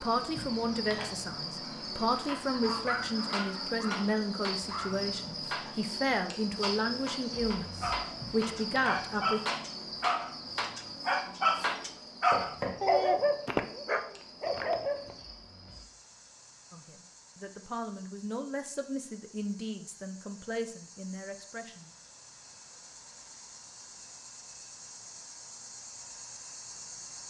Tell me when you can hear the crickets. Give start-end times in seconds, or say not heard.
0.0-27.2.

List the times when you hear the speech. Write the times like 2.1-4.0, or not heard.
0.0-9.4, 16.7-21.9.